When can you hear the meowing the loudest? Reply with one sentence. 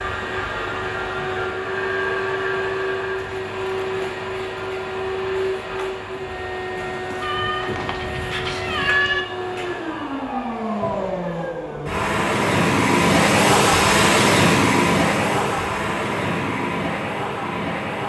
The volume of the meowing peaks at 9 seconds.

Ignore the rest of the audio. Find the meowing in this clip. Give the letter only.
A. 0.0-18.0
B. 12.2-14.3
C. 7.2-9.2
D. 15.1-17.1
C.